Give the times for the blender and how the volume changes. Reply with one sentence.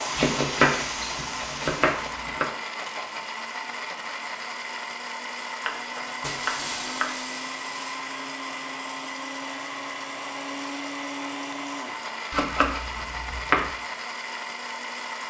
The blender can be heard from 0.0 to 15.2 s, at a steady volume.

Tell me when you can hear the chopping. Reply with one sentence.
The chopping can be heard from 0.1 to 2.5 s, from 5.7 to 7.2 s and from 12.3 to 13.7 s.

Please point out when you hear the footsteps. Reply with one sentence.
The footsteps can't be heard in this clip.